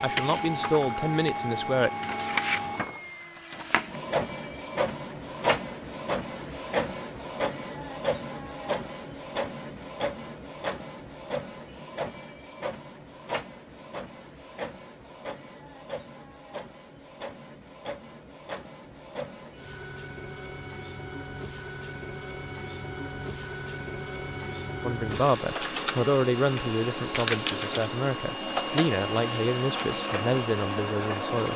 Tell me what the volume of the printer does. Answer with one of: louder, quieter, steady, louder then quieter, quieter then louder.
quieter then louder.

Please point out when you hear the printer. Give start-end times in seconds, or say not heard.
0.0-31.5.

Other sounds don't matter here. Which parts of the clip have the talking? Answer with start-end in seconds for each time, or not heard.
0.0-1.9, 24.8-31.5.